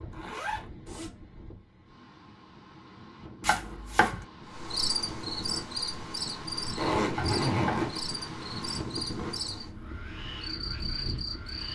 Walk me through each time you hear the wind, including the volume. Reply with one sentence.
The wind can be heard from 0.0 to 11.7 s, getting louder.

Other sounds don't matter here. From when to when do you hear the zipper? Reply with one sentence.
You can hear the zipper from 0.1 to 1.1 s and from 6.8 to 8.0 s.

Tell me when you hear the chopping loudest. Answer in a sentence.
The volume of the chopping peaks at 4 seconds.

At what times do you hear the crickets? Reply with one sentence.
The crickets can be heard from 4.5 to 11.7 s.